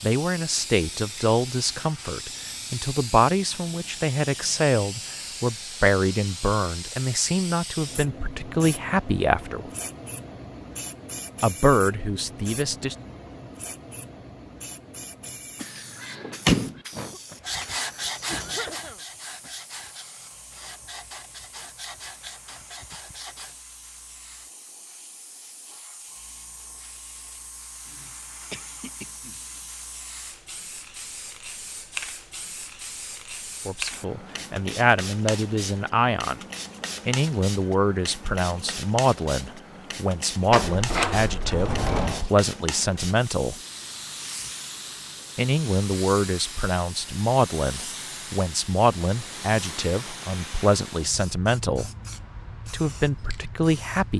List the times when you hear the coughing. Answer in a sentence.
You can hear the coughing from 16.9 to 19.5 s and from 27.9 to 29.6 s.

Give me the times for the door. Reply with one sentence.
The door can be heard from 15.6 to 16.8 s and from 40.5 to 42.2 s.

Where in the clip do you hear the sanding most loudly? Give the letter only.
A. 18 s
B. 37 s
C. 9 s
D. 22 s
A.